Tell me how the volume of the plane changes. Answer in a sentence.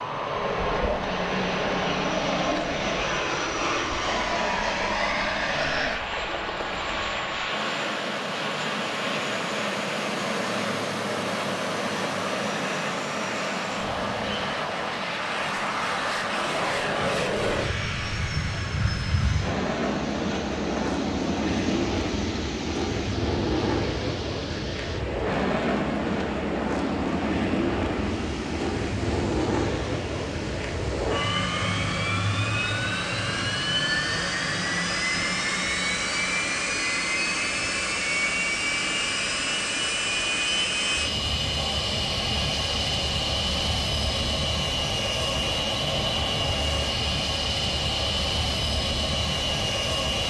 The volume of the plane stays about the same.